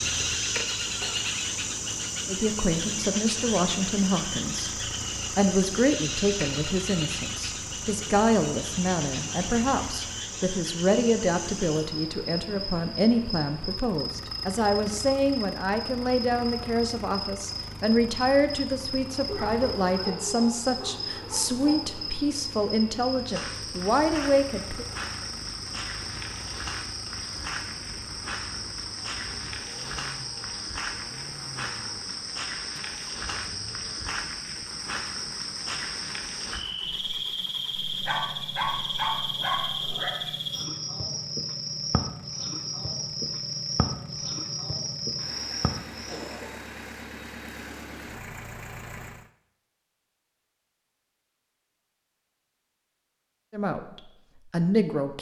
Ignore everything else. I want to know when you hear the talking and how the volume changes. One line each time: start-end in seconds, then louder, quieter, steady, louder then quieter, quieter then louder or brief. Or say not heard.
2.2-24.9 steady
53.5-55.1 brief.